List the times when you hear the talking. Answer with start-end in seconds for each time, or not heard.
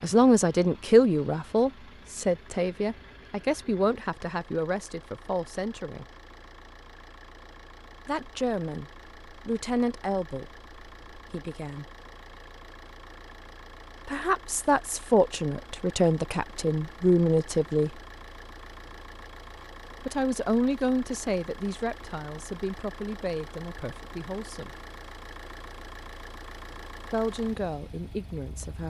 0.0-6.0, 8.1-11.8, 14.1-17.9, 20.1-24.7, 27.1-28.8.